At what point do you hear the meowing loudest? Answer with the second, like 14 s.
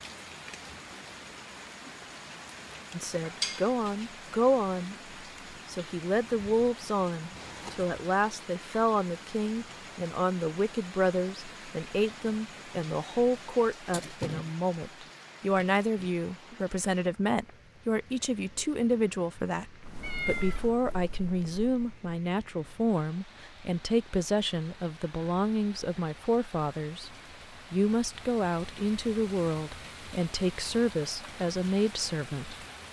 20 s.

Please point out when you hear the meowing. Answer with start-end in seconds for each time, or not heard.
7.3-8.0, 20.0-20.7.